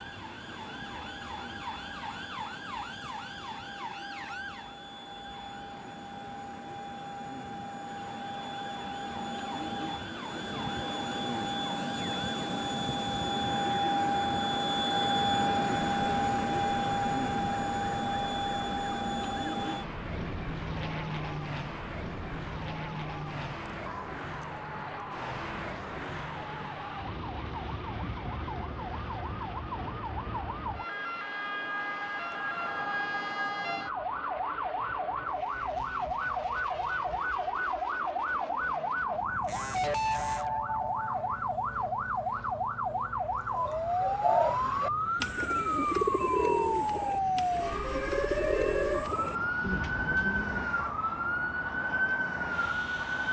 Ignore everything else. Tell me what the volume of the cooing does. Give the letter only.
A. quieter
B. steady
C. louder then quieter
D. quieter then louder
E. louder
A.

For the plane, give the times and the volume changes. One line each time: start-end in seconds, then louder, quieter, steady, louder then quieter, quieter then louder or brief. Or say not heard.
0.0-53.2 louder then quieter.